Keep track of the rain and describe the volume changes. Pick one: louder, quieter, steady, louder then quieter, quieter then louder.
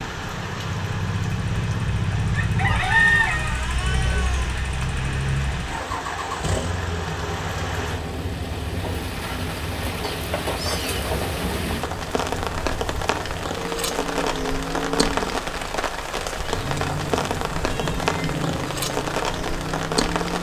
louder.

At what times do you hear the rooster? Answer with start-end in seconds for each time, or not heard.
2.3-3.6.